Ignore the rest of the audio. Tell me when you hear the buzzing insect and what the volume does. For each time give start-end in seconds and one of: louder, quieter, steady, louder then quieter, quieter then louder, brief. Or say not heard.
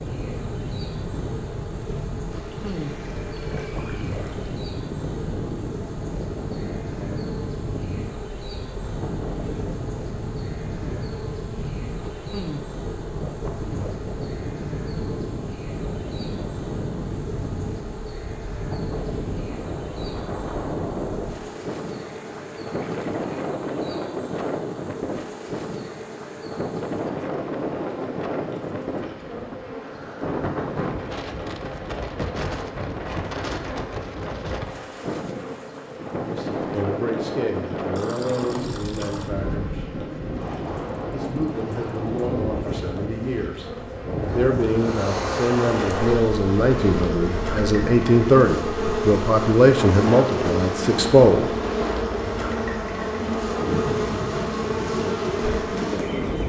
0.0-56.4 louder.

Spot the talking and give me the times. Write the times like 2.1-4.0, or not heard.
36.1-39.9, 41.1-43.7, 44.3-51.5.